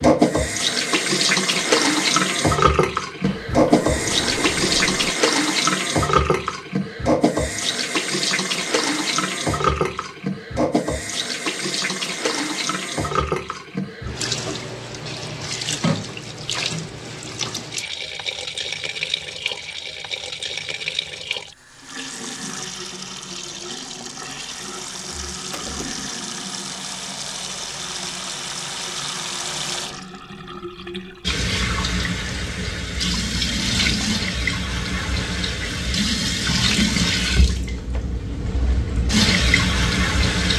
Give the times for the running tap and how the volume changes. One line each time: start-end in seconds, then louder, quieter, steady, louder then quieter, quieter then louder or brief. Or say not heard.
0.0-40.5 quieter then louder.